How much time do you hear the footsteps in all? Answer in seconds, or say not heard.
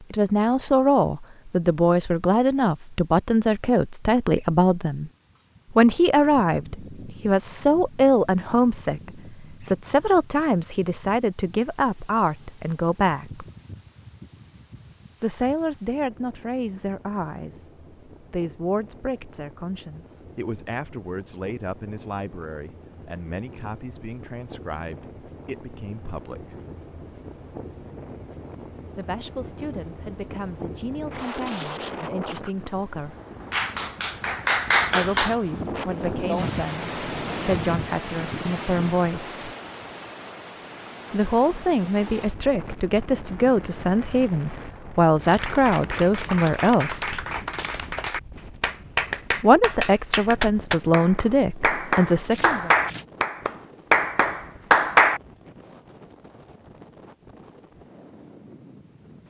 not heard.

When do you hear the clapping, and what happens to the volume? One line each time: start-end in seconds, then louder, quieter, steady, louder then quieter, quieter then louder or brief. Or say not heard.
33.5-35.4 brief
45.2-55.2 louder.